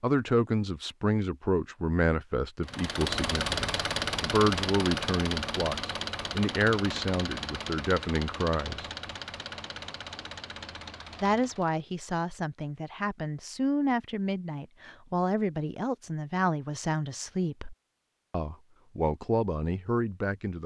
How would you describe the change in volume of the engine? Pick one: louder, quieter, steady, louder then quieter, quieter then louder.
quieter.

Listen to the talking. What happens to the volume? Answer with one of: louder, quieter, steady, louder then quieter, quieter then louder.
steady.